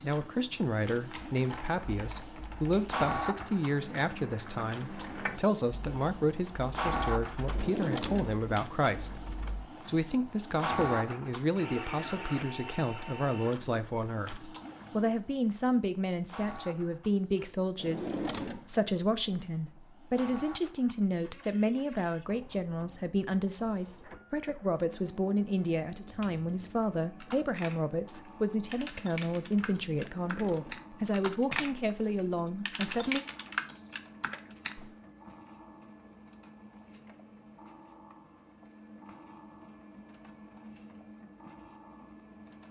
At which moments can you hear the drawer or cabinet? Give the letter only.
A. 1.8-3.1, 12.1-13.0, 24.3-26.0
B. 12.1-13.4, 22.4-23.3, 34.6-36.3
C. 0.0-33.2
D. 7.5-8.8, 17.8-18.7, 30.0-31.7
D.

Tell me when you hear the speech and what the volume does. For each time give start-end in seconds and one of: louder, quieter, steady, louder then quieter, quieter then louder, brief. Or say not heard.
0.0-33.2 steady.